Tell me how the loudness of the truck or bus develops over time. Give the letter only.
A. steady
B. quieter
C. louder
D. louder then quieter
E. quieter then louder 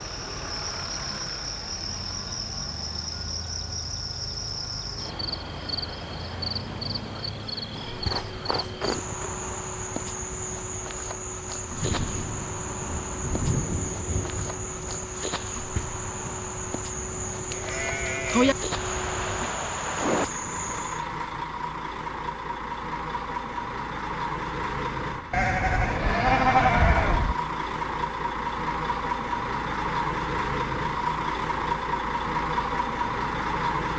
C.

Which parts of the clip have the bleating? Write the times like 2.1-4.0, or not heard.
7.8-9.3, 17.5-18.6, 25.3-27.4.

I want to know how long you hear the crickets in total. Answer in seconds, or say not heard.
21 s.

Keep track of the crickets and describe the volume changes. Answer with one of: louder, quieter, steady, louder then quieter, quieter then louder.
steady.